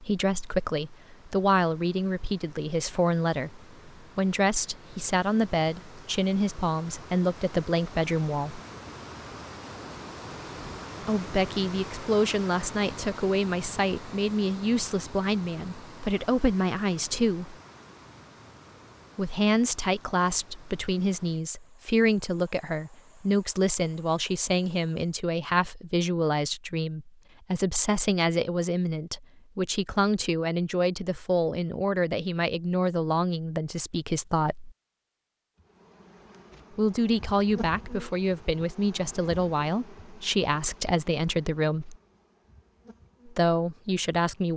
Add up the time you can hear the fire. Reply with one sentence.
You can't hear the fire here.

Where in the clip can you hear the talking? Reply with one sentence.
The talking can be heard from 0.0 to 8.6 s, from 11.0 to 17.6 s, from 19.1 to 34.7 s, from 36.8 to 42.0 s and from 43.2 to 44.5 s.